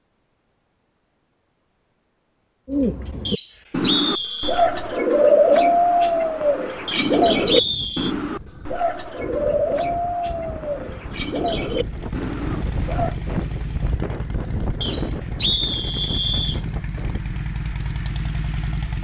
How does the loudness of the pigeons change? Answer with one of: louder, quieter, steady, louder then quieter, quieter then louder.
louder then quieter.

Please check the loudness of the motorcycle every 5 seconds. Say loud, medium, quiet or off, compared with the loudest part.
off, off, loud, loud.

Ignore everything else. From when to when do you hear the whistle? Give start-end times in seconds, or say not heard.
3.2-4.7, 6.8-8.2, 14.8-16.6.